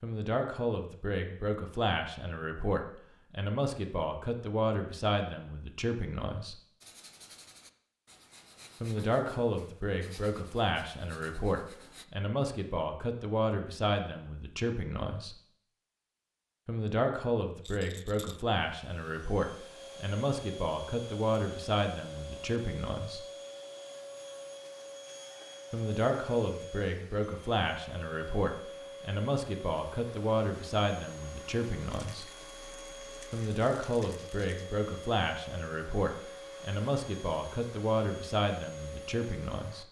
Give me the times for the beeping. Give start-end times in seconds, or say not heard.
not heard.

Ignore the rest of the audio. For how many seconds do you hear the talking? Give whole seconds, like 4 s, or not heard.
33 s.